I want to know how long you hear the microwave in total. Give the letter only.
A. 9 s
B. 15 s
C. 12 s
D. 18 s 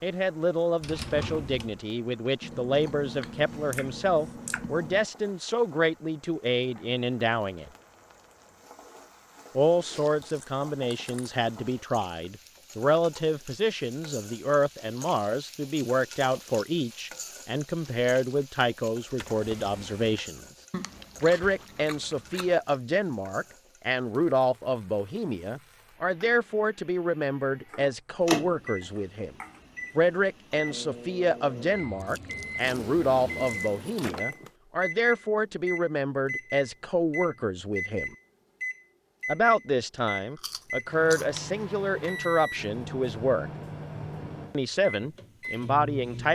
D.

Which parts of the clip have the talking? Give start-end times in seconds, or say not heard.
0.0-7.7, 9.6-20.4, 21.2-29.4, 29.9-38.1, 39.2-43.5, 44.5-46.2.